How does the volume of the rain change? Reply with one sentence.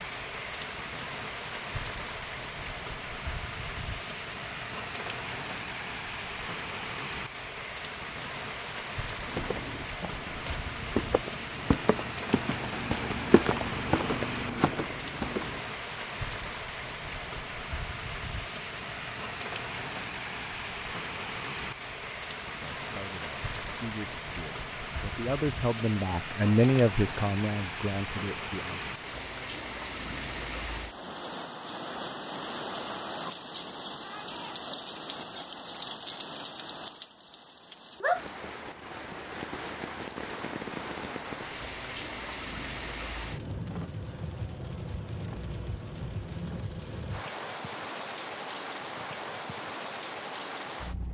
The volume of the rain stays about the same.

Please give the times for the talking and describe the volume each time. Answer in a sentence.
You can hear the talking from 22.8 to 28.8 s, getting louder then quieter.